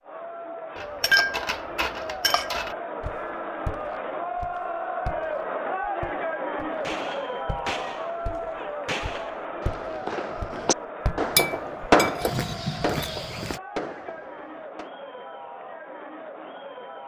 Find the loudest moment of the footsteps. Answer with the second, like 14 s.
13 s.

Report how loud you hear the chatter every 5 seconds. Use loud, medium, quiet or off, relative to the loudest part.
loud, loud, medium, medium.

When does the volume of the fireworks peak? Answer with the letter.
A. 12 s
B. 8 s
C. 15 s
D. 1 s
A.